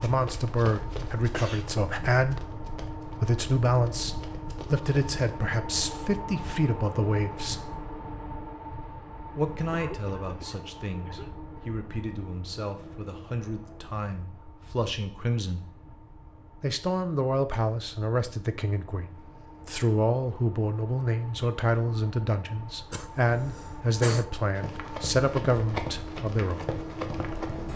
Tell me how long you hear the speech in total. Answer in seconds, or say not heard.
24 s.